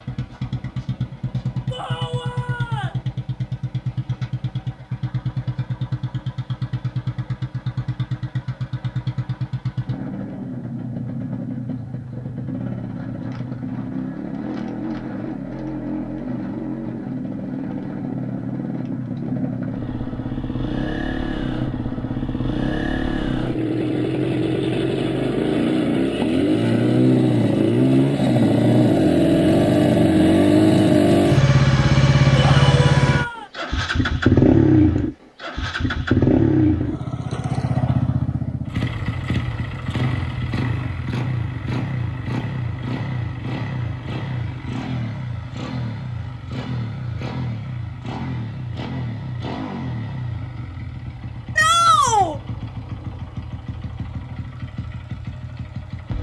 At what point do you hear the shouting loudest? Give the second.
52 s.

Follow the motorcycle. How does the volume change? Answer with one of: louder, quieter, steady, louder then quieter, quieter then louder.
louder then quieter.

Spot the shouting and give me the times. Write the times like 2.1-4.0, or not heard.
1.7-3.0, 32.4-33.5, 51.5-52.4.